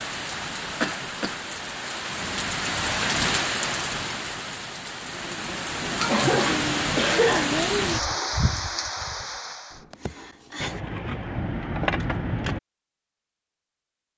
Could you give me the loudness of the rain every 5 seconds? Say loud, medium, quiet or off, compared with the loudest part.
loud, loud, off.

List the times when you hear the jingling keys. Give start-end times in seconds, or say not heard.
10.6-12.6.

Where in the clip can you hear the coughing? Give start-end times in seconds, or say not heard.
0.8-1.4, 6.0-7.5, 9.9-10.8.